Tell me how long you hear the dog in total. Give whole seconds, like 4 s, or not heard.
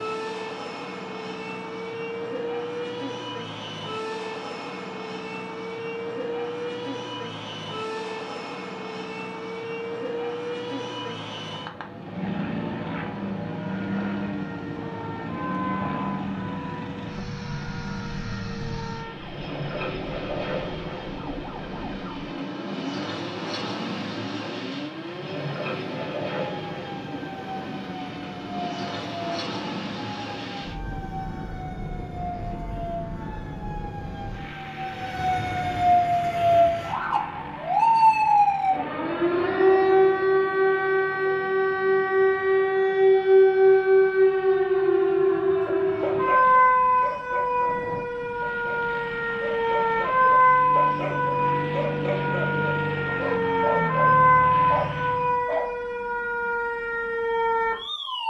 10 s.